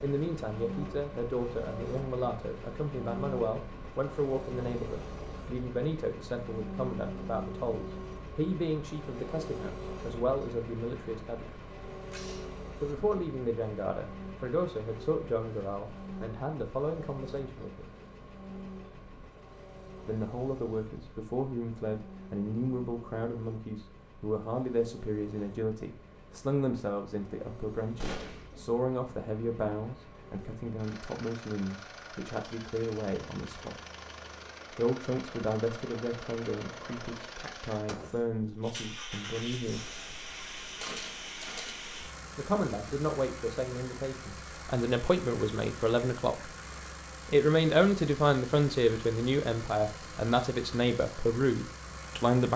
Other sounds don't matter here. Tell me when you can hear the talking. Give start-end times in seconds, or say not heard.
0.0-11.7, 12.8-17.9, 20.1-33.8, 34.8-39.9, 42.4-46.5, 47.2-52.5.